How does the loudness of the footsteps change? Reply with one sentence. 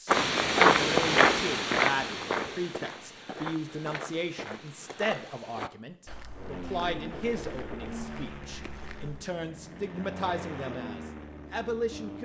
The loudness of the footsteps goes down.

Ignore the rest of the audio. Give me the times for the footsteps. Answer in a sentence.
The footsteps can be heard from 0.1 to 9.2 s.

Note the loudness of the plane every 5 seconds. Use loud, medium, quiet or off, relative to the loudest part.
off, loud, loud.